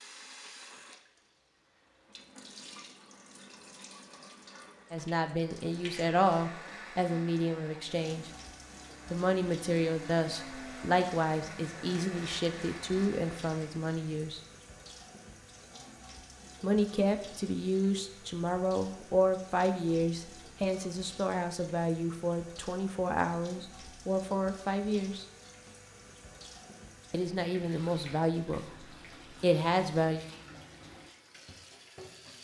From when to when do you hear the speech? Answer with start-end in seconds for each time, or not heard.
4.9-8.3, 9.1-14.4, 16.6-25.2, 27.1-30.2.